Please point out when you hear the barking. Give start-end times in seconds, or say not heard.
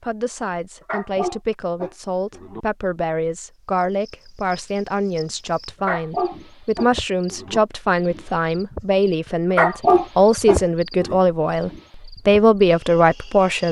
0.8-2.6, 5.8-7.6, 9.6-11.2.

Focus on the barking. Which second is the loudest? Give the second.
10 s.